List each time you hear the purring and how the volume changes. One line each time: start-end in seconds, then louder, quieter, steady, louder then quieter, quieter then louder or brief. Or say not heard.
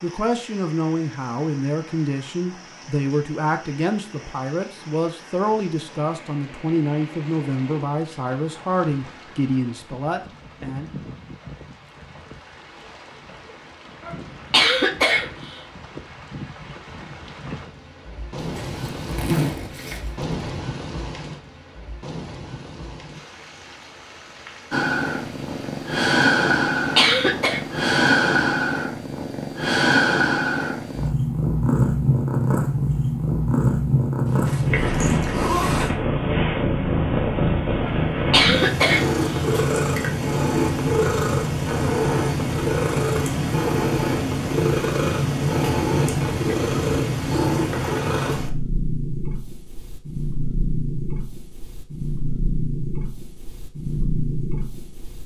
24.7-55.2 quieter.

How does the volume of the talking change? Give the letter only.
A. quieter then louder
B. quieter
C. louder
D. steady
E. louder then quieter
D.